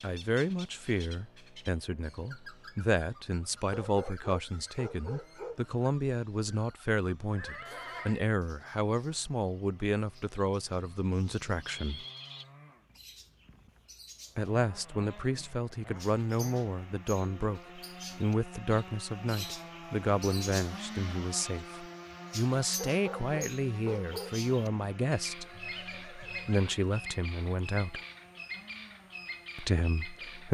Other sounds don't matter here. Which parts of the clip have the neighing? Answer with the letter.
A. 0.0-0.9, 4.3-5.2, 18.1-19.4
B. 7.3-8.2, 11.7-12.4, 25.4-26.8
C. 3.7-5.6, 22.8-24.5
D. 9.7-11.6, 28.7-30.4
B.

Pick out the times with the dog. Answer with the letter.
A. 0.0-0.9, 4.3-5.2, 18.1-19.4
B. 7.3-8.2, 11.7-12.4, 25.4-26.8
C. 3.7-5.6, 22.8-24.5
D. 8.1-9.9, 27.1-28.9
C.